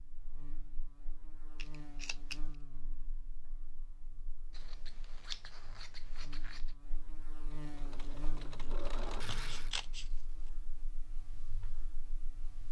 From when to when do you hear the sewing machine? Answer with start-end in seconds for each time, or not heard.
7.5-9.9.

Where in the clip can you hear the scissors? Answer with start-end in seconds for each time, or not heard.
1.6-2.5, 4.5-6.8, 9.2-10.1.